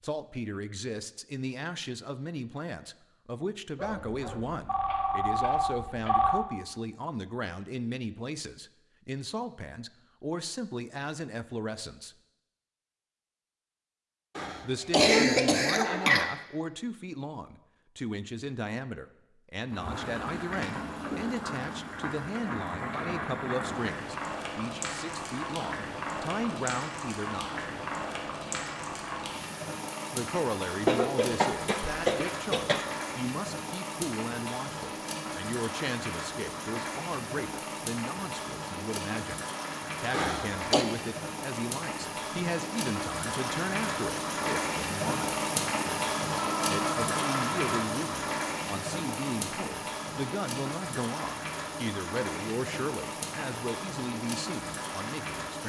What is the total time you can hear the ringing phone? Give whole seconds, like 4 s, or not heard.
4 s.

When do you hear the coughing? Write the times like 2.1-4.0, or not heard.
14.3-16.2, 30.9-32.9, 40.1-40.9.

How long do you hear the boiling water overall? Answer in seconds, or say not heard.
36 s.